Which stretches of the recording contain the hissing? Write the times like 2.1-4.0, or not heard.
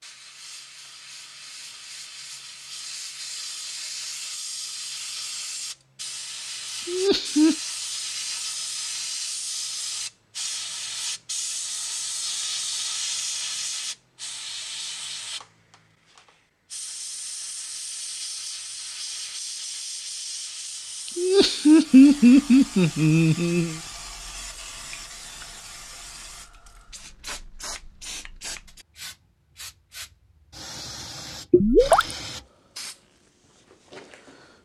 0.0-34.6.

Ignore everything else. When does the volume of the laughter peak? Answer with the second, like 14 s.
22 s.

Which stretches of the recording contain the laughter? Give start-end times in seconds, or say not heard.
6.8-7.5, 21.1-23.8.